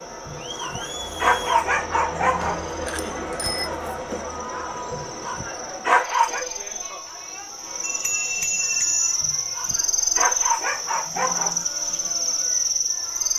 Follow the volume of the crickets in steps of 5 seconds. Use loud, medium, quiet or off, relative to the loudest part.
quiet, medium, loud.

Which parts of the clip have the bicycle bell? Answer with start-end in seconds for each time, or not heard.
2.4-3.7, 7.8-9.2.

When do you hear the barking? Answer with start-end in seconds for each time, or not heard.
0.2-2.6, 4.9-6.5, 9.2-11.7.